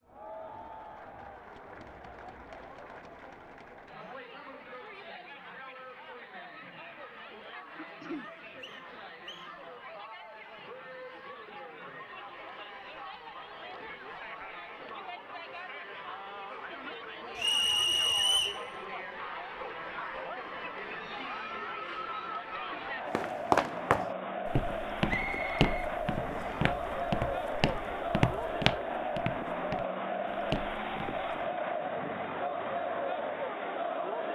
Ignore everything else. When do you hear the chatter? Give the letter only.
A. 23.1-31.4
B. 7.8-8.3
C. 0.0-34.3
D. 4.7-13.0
C.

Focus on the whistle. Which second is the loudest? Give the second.
18 s.